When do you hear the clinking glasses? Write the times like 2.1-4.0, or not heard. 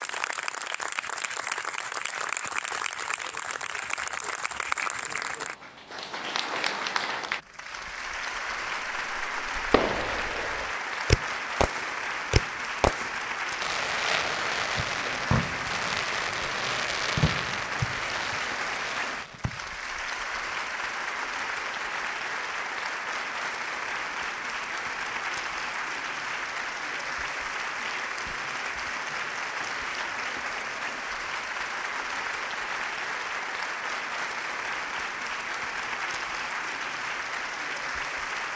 not heard.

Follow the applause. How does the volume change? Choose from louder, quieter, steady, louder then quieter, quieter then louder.
steady.